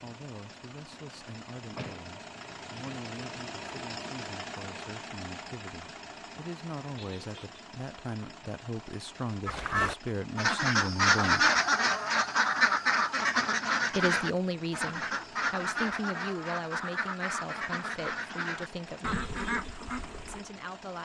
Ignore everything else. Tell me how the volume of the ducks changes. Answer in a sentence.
The volume of the ducks goes down.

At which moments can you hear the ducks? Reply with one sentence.
The ducks can be heard from 9.4 to 20.4 s.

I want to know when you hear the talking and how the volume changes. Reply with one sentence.
You can hear the talking from 0.0 to 11.5 s, getting louder; from 13.9 to 19.2 s, getting quieter; and briefly from 20.2 to 20.9 s.